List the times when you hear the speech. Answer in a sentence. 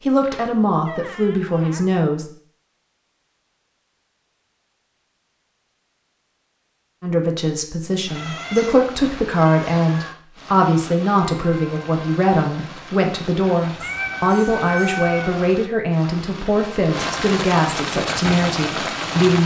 The speech can be heard from 0.0 to 2.2 s and from 7.0 to 19.4 s.